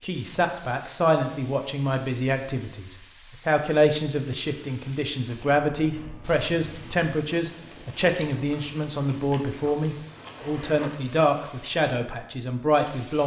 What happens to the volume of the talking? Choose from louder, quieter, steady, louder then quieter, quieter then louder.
steady.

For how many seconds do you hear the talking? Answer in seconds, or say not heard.
13 s.